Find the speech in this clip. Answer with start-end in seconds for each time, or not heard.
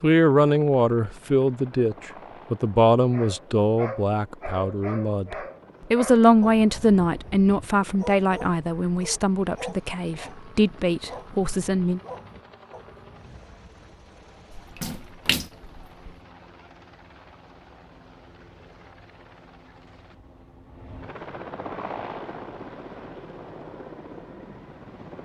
0.0-12.0.